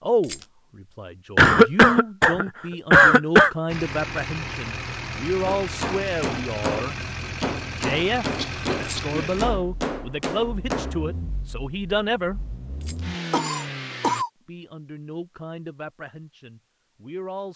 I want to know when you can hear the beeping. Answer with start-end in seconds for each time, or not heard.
not heard.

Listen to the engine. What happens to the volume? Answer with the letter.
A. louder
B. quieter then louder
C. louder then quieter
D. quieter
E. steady
B.